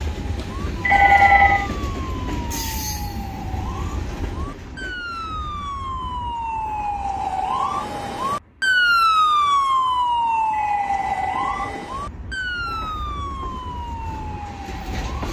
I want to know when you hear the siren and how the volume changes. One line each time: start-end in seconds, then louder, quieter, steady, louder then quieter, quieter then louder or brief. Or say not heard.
0.1-15.2 louder then quieter.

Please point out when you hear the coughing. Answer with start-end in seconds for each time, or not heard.
not heard.